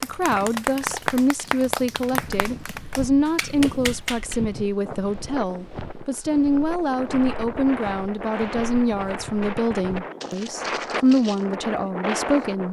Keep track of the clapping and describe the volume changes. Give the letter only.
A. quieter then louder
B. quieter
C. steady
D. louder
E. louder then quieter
A.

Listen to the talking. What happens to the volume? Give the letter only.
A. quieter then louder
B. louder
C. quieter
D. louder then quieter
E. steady
E.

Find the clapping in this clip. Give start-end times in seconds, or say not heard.
0.0-4.4.